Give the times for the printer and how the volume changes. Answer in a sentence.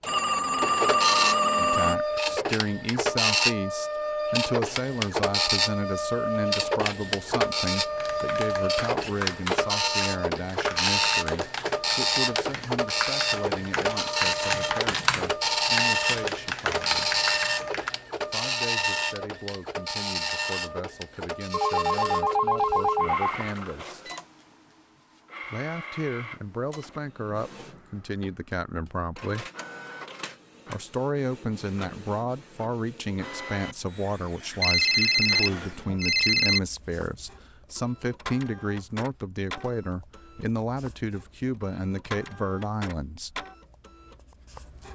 You can hear the printer from 0.0 to 44.9 s, getting quieter.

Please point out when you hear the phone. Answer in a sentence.
The phone can be heard from 0.1 to 1.9 s, from 21.5 to 23.4 s and from 34.6 to 36.6 s.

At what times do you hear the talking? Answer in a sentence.
You can hear the talking from 1.6 to 17.2 s, from 18.2 to 24.1 s, from 25.5 to 29.5 s and from 30.6 to 43.5 s.